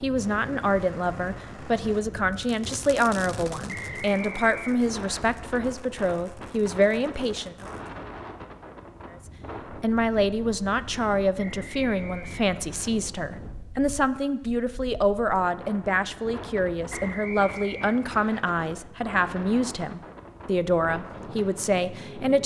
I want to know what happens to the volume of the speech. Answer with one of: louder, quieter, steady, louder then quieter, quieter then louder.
steady.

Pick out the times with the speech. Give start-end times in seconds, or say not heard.
0.0-7.7, 9.2-22.4.